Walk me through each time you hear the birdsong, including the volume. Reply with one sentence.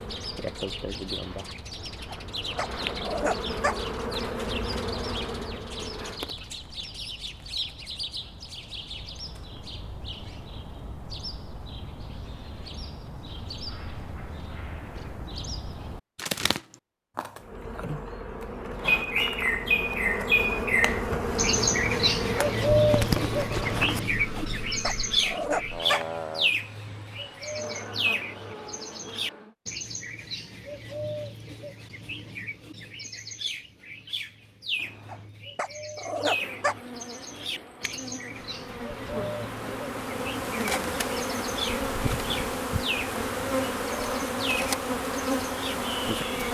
You can hear the birdsong from 0.0 to 46.4 s, getting louder then quieter.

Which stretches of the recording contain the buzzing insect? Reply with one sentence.
The buzzing insect can be heard from 0.0 to 6.3 s, from 17.4 to 29.6 s and from 36.2 to 46.4 s.